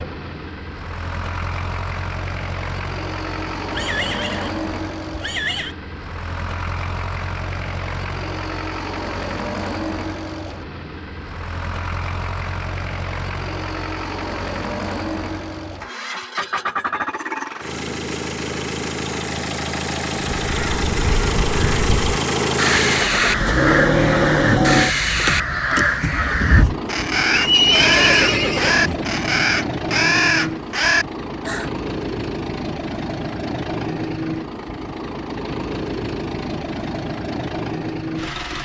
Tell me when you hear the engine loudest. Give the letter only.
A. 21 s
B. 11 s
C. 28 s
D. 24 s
D.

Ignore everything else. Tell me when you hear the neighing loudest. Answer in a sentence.
The volume of the neighing peaks at 28 seconds.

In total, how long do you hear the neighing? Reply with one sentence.
The neighing can be heard for 4 seconds in total.